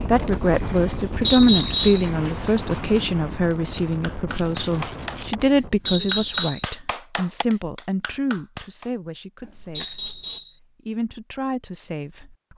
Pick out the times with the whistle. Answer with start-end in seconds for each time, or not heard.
1.2-2.1, 5.8-6.7, 9.8-10.6.